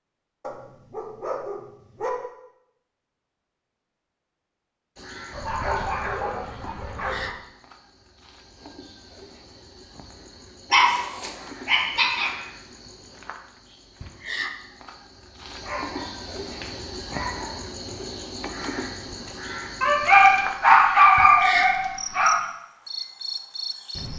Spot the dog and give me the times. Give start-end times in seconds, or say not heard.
0.4-2.1, 5.3-7.3, 10.7-12.3, 15.6-17.6, 19.8-22.4.